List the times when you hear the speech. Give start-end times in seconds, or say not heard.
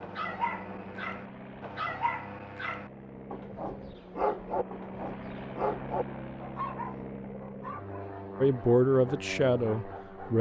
8.4-10.3.